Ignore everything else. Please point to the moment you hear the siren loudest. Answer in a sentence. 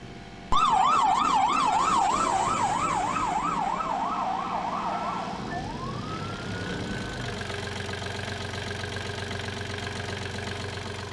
The volume of the siren peaks at 1 second.